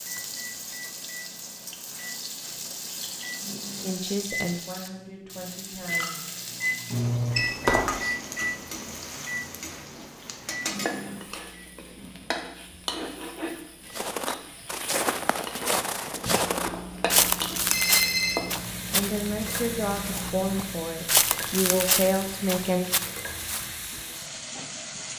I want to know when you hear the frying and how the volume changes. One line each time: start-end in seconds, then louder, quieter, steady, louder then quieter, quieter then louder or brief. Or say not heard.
0.0-25.1 steady.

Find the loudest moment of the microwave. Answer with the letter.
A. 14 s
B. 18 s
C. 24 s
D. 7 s
D.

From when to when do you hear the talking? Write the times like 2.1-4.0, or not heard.
3.8-6.3, 18.9-22.9.